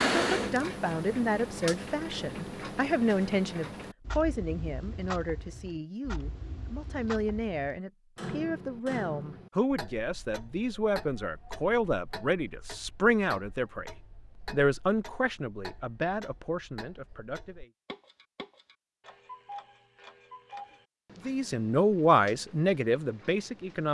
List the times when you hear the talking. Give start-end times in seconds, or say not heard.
0.0-17.7, 21.2-23.9.